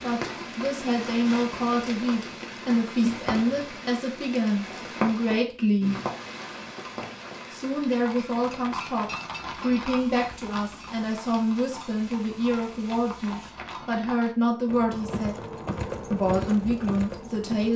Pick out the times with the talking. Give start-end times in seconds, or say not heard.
0.0-6.0, 7.5-15.3, 16.1-17.7.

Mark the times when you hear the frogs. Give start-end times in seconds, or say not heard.
not heard.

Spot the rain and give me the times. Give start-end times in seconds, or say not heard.
0.0-13.6.